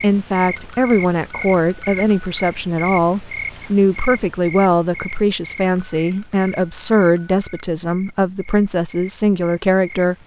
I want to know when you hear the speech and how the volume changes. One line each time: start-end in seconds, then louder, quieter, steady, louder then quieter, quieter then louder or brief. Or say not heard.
0.0-10.2 steady.